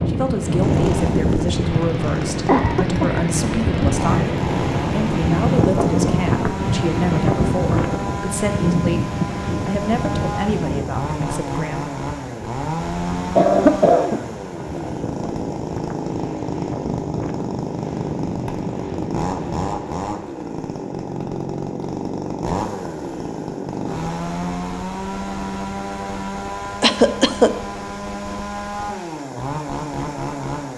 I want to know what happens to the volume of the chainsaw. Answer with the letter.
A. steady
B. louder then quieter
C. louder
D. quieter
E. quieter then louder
A.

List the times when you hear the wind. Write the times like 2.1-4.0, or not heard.
0.0-19.9.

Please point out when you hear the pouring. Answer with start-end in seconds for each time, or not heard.
not heard.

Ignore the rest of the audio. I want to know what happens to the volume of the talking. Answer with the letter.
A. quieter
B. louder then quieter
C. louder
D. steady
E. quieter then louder
D.